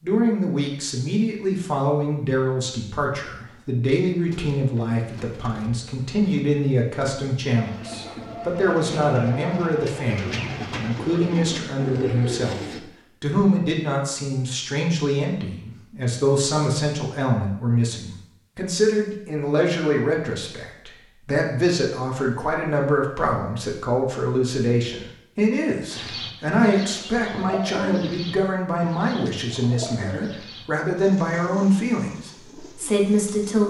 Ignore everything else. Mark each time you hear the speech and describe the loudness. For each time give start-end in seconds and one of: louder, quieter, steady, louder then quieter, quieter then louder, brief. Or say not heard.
0.0-33.6 steady.